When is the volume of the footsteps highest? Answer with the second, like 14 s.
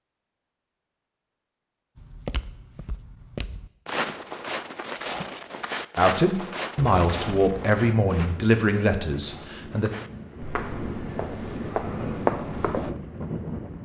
12 s.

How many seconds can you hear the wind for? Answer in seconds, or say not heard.
7 s.